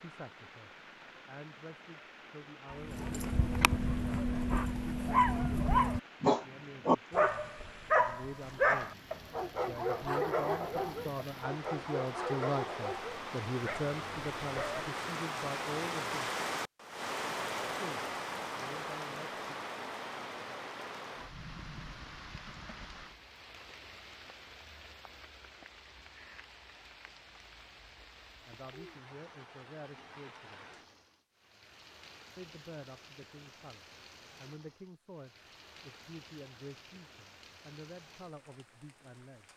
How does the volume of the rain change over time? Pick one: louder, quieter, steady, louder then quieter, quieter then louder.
louder then quieter.